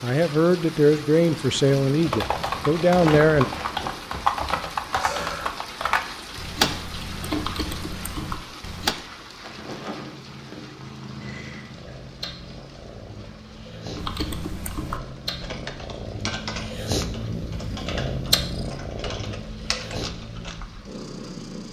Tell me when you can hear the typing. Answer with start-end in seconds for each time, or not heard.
2.0-8.9, 13.9-20.8.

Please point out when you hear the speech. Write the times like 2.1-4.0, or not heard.
0.0-3.5.